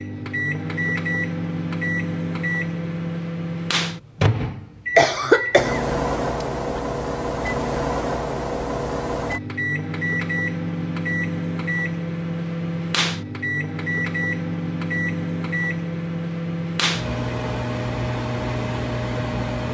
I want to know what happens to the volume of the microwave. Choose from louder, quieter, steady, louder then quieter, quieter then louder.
steady.